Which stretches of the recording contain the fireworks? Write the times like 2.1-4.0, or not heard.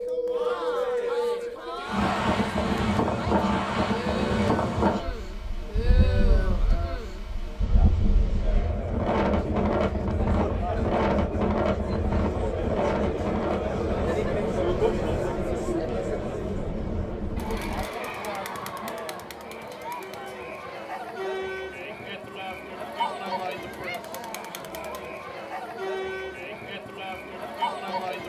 not heard.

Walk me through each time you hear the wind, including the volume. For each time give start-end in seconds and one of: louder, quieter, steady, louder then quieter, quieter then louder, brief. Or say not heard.
0.0-17.9 quieter.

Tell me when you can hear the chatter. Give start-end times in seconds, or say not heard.
0.1-28.2.